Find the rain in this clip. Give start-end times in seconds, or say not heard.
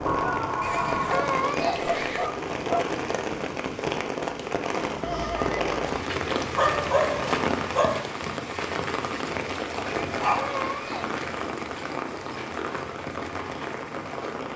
0.0-14.5.